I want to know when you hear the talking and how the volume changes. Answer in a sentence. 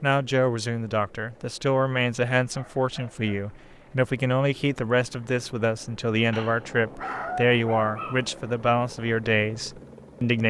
The talking can be heard from 0.0 to 10.4 s, at a steady volume.